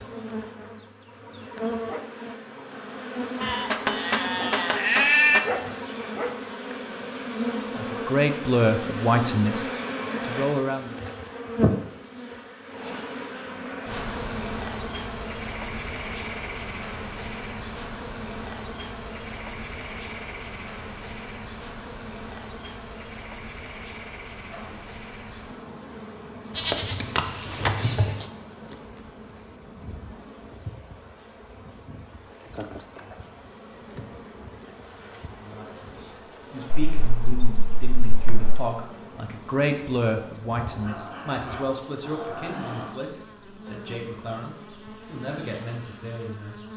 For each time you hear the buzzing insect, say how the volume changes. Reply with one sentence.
The buzzing insect can be heard from 0.0 to 46.7 s, getting quieter.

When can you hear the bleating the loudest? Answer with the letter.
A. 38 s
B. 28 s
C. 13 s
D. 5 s
D.